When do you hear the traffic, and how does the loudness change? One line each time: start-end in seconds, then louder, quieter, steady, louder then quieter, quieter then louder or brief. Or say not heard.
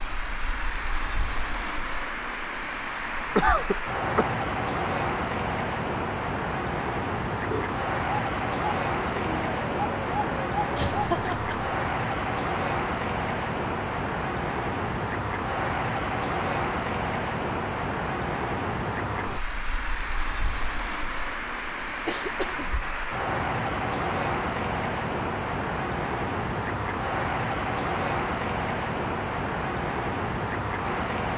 0.0-31.3 steady.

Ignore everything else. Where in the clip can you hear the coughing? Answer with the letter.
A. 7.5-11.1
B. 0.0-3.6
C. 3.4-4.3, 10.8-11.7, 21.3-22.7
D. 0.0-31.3
C.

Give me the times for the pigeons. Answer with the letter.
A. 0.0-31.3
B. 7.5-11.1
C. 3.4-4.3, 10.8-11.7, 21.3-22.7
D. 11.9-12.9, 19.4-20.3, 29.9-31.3
B.